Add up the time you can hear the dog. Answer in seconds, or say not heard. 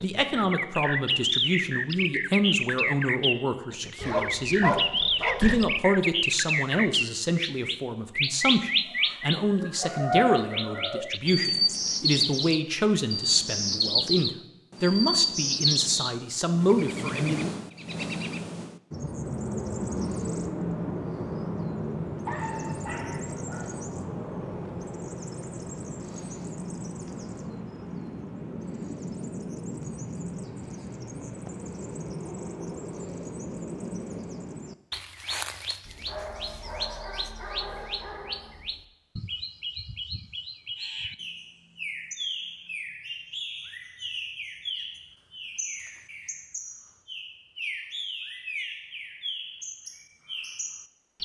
6 s.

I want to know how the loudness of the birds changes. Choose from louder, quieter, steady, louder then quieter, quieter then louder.
quieter.